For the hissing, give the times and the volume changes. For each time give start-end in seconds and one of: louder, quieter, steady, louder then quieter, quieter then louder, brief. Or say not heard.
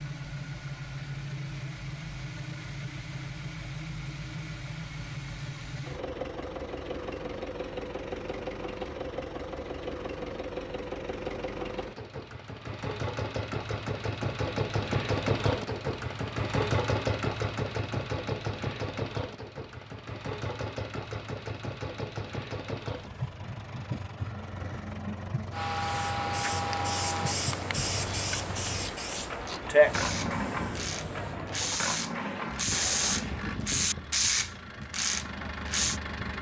25.8-33.5 louder then quieter.